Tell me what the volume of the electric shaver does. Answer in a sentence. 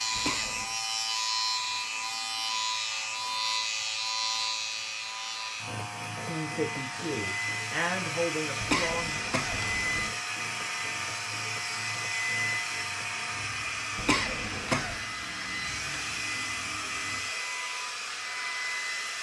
The loudness of the electric shaver goes down.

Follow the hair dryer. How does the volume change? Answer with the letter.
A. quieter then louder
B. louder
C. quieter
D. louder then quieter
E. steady
B.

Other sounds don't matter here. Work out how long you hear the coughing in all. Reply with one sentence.
The coughing can be heard for 3 seconds in total.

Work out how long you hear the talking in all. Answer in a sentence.
The talking can be heard for 3 seconds in total.